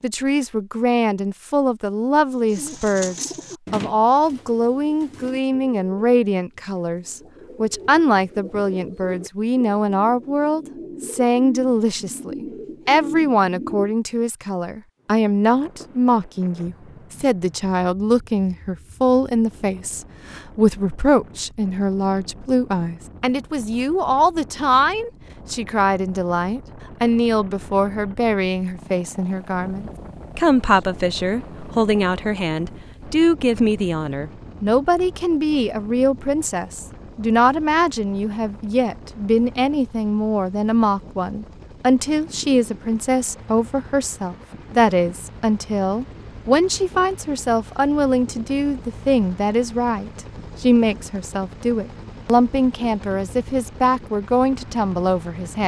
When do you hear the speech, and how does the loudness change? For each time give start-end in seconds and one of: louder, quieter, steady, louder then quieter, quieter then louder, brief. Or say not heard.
0.0-55.6 steady.